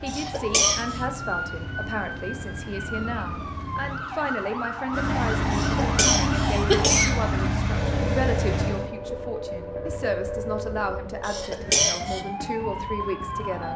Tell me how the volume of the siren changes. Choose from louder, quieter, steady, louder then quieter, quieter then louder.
steady.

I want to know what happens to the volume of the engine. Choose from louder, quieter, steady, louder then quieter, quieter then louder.
louder.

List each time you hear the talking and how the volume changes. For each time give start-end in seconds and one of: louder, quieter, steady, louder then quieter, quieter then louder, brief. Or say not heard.
0.0-13.7 steady.